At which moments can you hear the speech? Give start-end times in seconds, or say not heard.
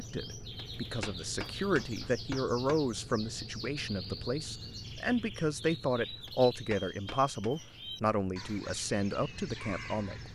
0.0-10.2.